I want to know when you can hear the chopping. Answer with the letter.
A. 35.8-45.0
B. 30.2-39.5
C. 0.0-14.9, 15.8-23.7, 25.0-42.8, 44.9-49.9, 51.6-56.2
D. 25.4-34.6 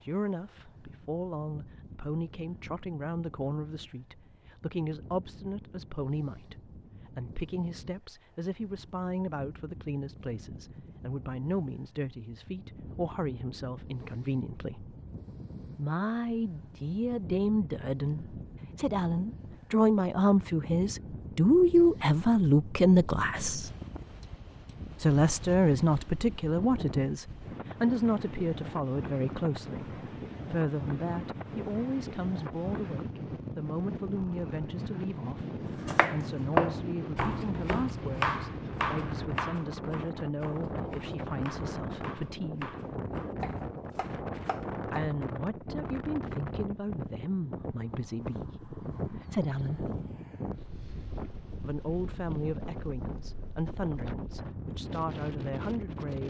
A.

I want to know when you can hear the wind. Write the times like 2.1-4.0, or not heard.
0.0-56.2.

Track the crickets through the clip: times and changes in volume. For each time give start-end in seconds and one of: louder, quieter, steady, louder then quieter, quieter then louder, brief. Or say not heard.
not heard.